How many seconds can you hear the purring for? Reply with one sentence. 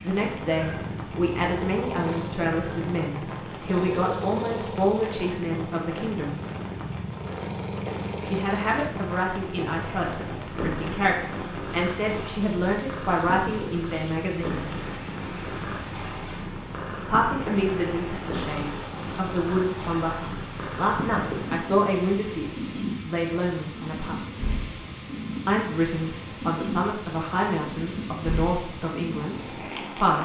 You can hear the purring for 30 seconds altogether.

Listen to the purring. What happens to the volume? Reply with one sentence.
The loudness of the purring stays about the same.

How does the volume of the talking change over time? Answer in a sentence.
The volume of the talking stays about the same.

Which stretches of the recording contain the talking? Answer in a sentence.
The talking can be heard from 0.0 to 6.4 s, from 8.2 to 14.7 s, from 17.1 to 24.2 s and from 25.4 to 30.2 s.